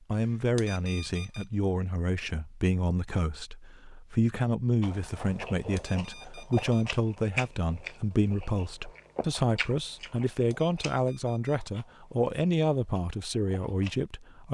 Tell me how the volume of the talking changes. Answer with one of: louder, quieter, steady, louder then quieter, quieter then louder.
steady.